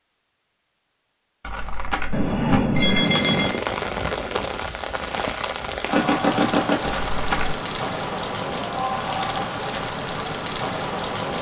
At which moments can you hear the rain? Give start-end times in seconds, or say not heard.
3.0-11.3.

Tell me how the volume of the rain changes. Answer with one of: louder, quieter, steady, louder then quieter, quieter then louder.
steady.